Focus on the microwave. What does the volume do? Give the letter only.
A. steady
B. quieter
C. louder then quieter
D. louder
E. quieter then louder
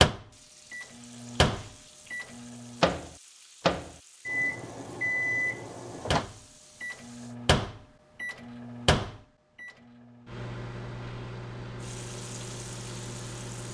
B.